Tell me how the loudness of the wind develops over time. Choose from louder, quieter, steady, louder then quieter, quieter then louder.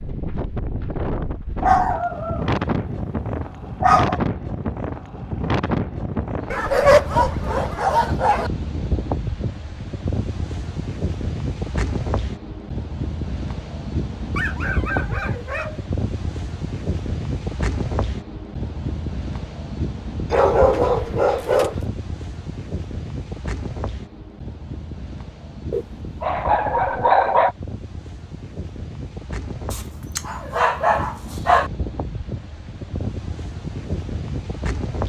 quieter.